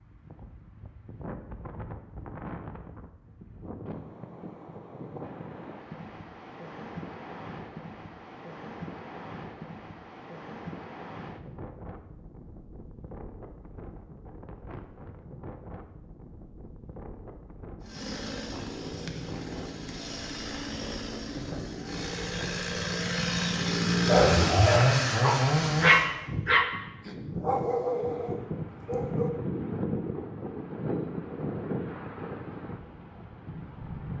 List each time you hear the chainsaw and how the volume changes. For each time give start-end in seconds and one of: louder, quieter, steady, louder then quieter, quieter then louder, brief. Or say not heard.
17.8-26.1 louder.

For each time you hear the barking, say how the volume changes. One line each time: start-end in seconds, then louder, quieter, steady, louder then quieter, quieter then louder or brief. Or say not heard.
24.1-29.3 louder then quieter.